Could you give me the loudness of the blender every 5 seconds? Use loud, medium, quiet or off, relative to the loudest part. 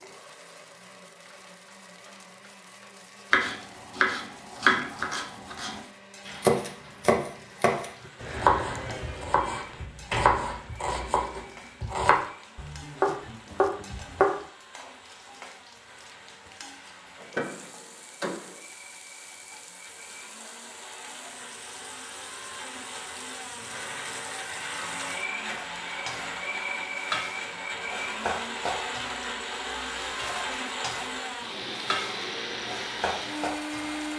quiet, quiet, quiet, quiet, medium, loud, loud.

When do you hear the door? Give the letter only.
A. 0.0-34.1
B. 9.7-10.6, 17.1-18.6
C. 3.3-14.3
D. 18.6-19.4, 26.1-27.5
B.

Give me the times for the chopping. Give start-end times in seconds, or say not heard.
3.3-14.3.